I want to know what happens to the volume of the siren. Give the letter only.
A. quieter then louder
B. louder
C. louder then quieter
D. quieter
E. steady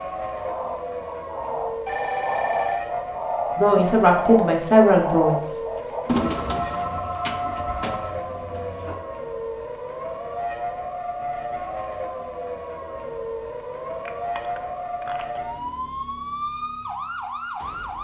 E.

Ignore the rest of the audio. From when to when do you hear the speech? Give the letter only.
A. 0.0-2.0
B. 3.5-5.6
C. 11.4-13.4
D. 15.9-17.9
B.